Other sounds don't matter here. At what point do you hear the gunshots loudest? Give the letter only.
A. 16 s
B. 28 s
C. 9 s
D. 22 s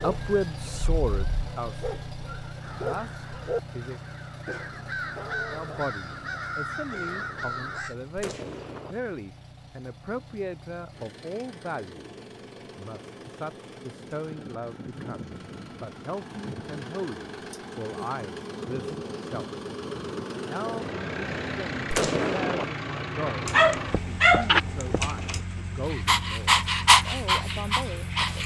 D.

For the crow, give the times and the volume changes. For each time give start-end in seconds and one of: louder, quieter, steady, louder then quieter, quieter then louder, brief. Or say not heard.
2.6-8.0 louder.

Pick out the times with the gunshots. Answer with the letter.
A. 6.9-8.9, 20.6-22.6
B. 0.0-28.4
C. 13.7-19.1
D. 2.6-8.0
A.